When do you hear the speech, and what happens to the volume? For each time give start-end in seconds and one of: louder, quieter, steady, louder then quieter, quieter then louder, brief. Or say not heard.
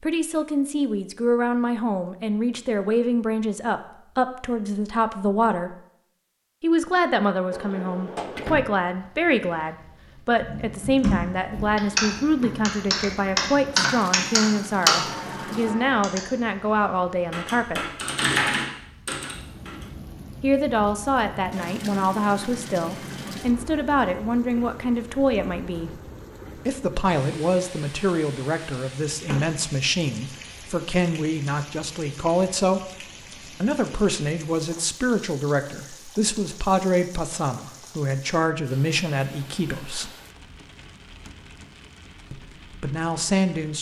0.0-5.8 steady
6.6-17.9 steady
20.4-40.1 steady
42.3-43.7 brief.